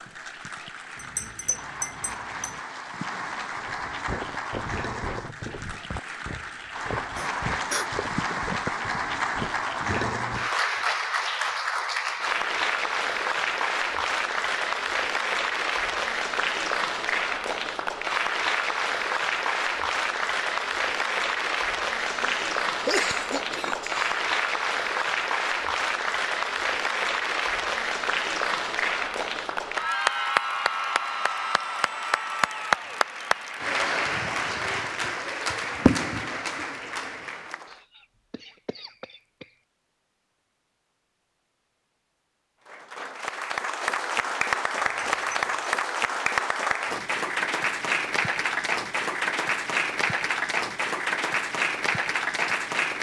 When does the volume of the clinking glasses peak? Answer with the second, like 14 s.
2 s.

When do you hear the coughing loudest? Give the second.
23 s.